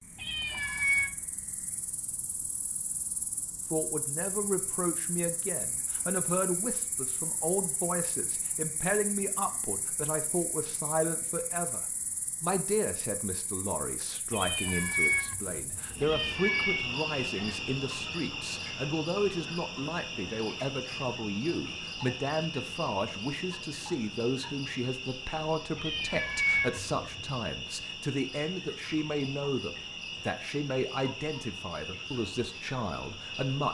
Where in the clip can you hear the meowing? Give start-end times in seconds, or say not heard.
0.1-1.1, 14.3-16.9, 25.8-27.2.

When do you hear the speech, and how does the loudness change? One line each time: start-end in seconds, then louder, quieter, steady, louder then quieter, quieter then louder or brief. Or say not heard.
3.7-33.7 steady.